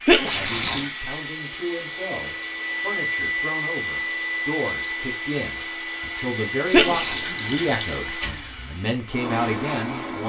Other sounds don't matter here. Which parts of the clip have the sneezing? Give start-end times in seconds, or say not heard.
0.1-0.6, 6.7-7.3.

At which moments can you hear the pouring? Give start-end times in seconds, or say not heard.
0.2-0.9, 6.7-8.0.